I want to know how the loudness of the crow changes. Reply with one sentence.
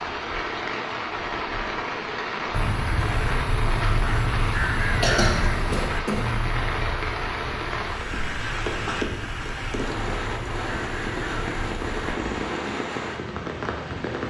The volume of the crow goes down.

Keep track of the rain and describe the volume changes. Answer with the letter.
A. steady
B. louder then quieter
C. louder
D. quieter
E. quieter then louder
A.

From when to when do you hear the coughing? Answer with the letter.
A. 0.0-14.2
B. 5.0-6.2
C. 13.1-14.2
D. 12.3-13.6
B.